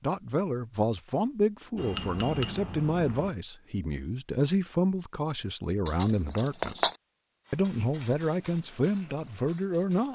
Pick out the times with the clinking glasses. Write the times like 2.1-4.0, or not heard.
1.8-3.3, 5.8-7.0.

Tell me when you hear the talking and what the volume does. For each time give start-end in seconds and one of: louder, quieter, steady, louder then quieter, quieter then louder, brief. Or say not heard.
0.0-6.8 steady
7.5-10.0 brief.